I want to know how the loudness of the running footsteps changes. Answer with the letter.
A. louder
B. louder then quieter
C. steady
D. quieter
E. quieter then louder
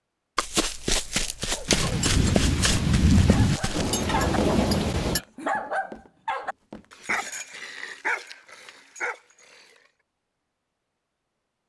D.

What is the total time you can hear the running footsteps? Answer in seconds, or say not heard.
7 s.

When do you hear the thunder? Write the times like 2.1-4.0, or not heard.
1.6-5.2.